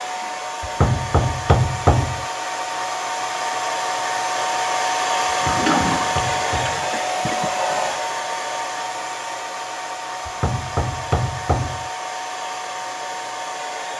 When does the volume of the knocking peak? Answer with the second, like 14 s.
2 s.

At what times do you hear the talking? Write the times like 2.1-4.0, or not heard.
not heard.